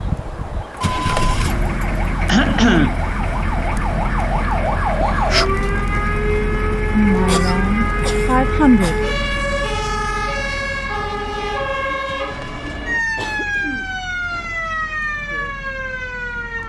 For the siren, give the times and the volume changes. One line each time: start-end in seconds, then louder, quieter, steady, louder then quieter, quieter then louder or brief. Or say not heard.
0.0-16.6 louder.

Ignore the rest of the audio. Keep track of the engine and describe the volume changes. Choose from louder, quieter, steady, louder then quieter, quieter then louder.
quieter.